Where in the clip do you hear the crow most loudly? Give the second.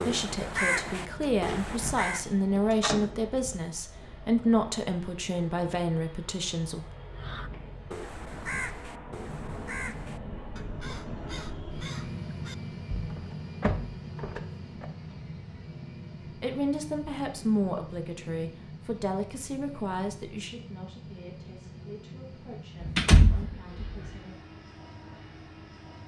1 s.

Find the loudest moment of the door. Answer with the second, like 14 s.
23 s.